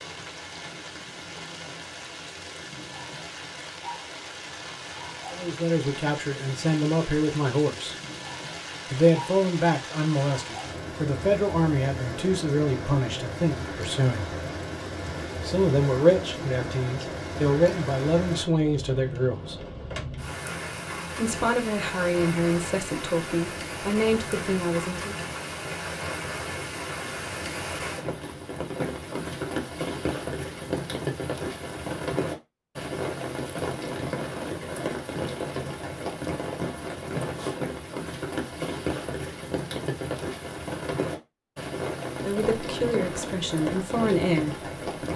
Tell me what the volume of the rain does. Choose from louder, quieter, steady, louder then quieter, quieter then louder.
louder.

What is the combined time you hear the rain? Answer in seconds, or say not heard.
45 s.